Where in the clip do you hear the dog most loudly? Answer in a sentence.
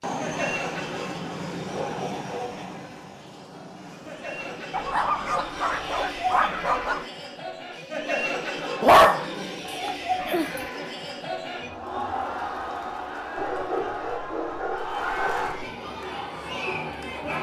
The loudest moment of the dog is at 9 seconds.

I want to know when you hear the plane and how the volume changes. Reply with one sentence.
The plane can be heard from 0.0 to 5.5 s, getting quieter.